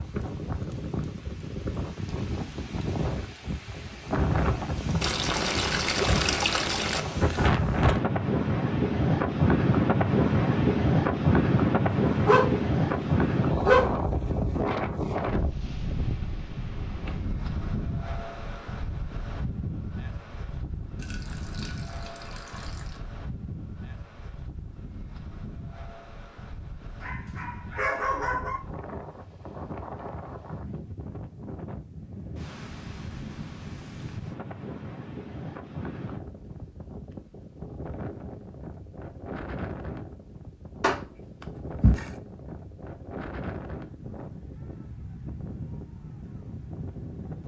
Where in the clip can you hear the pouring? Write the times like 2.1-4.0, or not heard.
5.0-7.0, 20.9-23.0, 40.8-42.1.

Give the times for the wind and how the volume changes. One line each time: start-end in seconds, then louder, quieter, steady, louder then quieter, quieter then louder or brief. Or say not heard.
0.0-47.4 quieter.